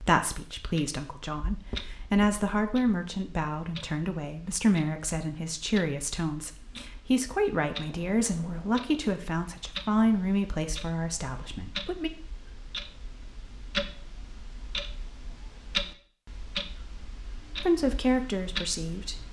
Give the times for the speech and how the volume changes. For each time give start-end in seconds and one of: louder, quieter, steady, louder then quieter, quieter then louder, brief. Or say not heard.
0.0-12.1 steady
17.6-19.2 brief.